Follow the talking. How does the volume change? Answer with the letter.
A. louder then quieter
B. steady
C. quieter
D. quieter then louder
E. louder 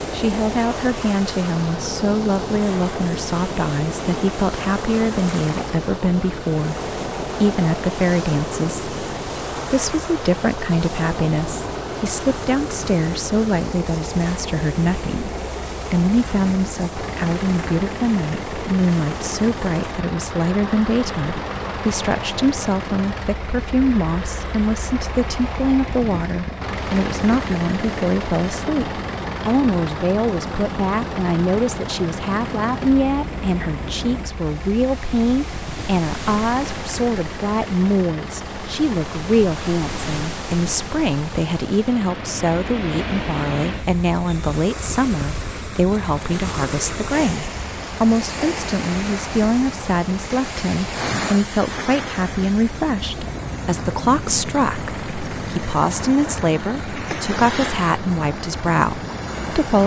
B.